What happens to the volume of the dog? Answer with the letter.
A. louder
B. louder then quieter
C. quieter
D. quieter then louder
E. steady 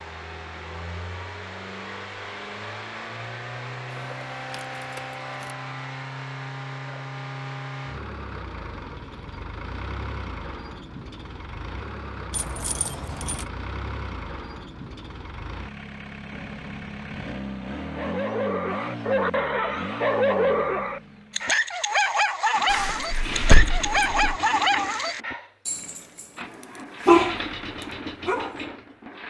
A.